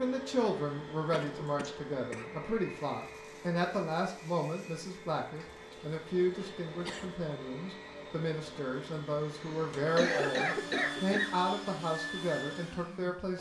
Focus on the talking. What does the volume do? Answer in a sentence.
The volume of the talking stays about the same.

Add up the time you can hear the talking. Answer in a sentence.
You can hear the talking for 13 seconds altogether.